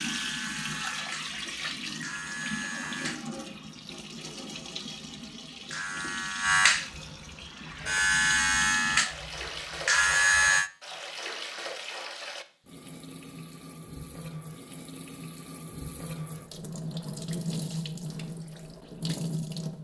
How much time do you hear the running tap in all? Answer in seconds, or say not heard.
20 s.